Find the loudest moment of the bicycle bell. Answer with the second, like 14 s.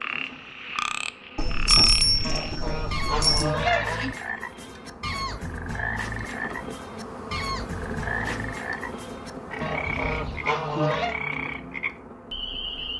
2 s.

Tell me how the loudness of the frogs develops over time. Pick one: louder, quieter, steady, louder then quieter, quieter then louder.
steady.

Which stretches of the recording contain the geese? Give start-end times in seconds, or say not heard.
2.2-4.1, 9.6-11.2.